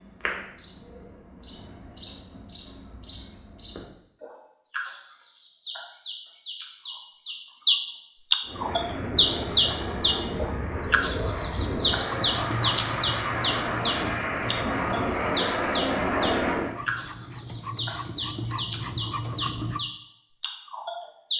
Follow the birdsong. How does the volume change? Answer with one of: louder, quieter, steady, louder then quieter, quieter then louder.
louder then quieter.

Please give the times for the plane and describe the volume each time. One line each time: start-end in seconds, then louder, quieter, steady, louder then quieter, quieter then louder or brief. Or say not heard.
8.4-16.8 louder.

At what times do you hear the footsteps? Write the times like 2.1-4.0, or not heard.
not heard.